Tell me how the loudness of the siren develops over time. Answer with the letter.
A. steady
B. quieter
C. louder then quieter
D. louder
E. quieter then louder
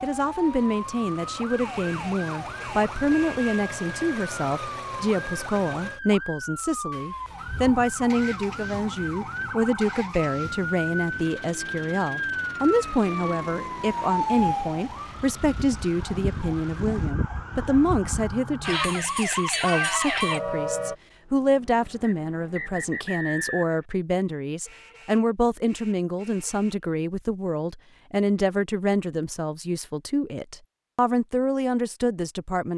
D.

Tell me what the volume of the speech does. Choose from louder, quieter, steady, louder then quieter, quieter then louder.
steady.